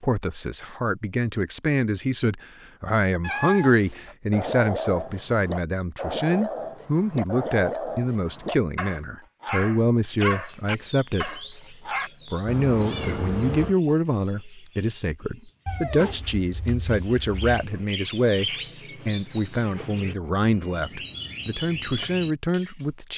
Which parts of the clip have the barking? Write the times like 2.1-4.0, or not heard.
3.9-12.1.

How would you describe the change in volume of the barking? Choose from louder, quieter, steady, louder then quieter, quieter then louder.
steady.